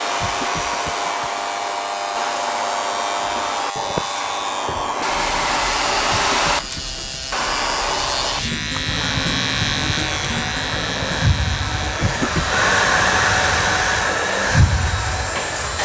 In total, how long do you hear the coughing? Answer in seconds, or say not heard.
3 s.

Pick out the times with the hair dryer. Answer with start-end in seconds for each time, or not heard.
0.0-15.8.